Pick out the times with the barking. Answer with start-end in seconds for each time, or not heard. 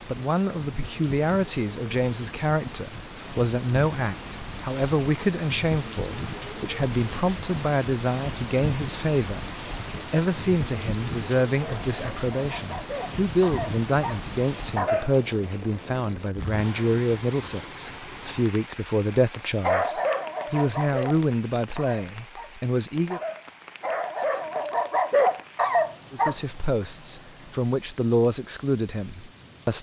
11.6-15.2, 19.6-26.6.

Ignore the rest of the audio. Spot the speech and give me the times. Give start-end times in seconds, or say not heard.
0.1-9.4, 10.1-23.2, 26.1-29.7.